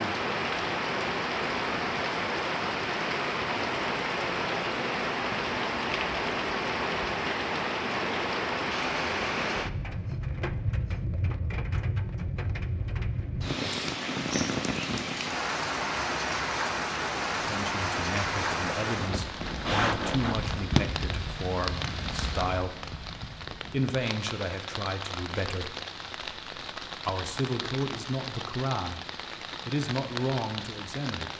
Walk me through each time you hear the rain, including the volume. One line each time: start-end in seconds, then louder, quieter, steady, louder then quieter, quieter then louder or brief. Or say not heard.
0.0-31.3 quieter.